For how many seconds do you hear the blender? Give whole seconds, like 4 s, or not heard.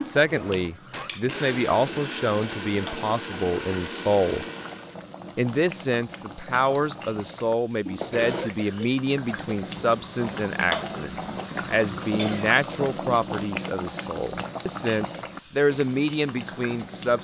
5 s.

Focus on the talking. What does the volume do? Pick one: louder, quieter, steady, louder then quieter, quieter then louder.
steady.